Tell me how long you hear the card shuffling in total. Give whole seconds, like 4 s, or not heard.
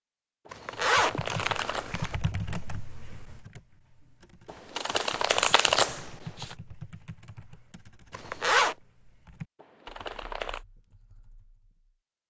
5 s.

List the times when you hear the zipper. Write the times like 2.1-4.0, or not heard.
0.5-2.2, 8.1-8.8.